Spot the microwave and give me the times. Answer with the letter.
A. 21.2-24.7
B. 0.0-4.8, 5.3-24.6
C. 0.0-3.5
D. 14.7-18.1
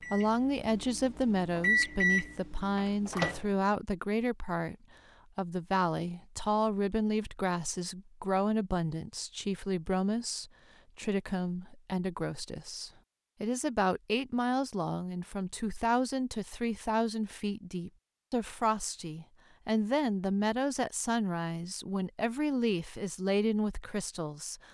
C.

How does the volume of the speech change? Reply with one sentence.
The loudness of the speech stays about the same.